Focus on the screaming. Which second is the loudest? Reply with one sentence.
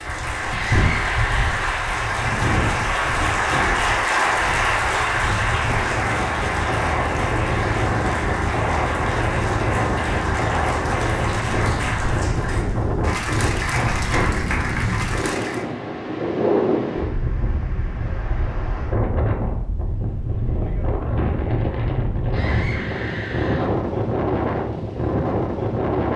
The loudest moment of the screaming is at 1 second.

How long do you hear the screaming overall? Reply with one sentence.
You can hear the screaming for 3 seconds altogether.